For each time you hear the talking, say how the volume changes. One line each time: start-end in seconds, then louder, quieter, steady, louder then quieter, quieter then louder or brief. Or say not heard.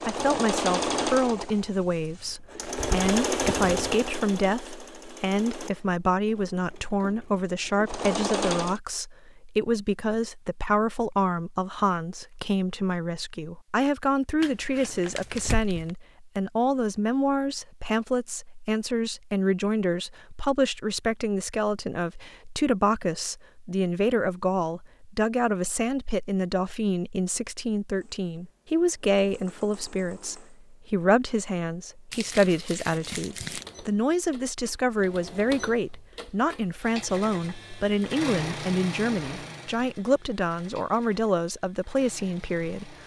0.1-43.0 steady.